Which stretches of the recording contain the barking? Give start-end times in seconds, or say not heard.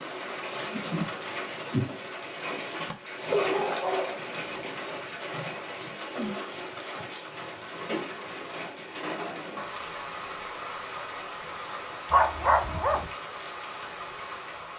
3.2-4.7, 12.1-13.1.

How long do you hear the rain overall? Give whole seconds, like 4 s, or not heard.
15 s.